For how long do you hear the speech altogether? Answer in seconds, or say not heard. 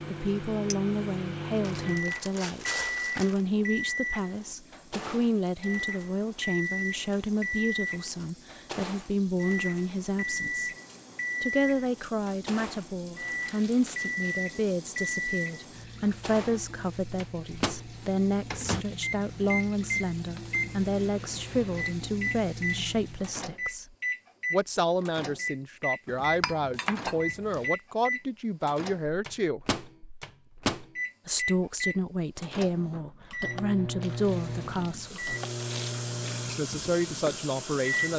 34 s.